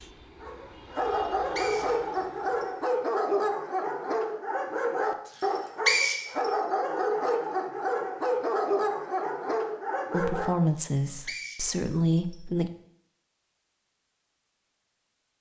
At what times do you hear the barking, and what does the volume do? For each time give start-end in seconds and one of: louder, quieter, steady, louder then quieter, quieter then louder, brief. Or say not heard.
0.4-10.6 steady.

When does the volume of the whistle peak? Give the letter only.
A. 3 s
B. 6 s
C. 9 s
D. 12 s
B.